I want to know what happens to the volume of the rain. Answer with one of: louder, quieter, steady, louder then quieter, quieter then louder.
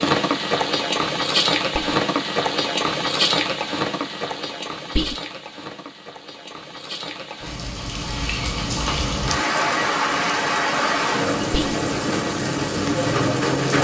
quieter then louder.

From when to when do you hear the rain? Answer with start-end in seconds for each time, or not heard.
0.0-13.7.